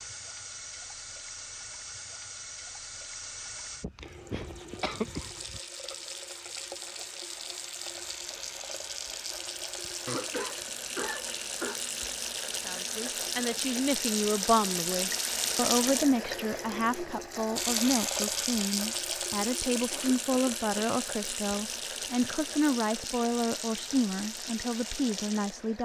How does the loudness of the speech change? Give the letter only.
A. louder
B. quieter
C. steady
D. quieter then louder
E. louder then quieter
C.